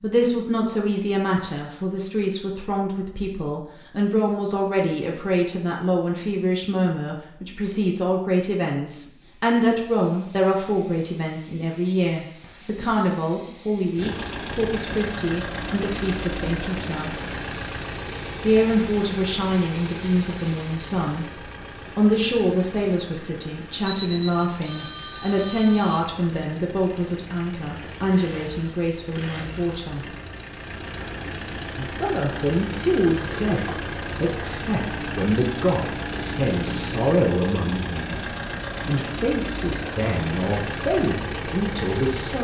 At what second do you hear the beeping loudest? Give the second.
24 s.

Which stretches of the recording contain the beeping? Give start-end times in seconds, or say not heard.
23.9-26.1.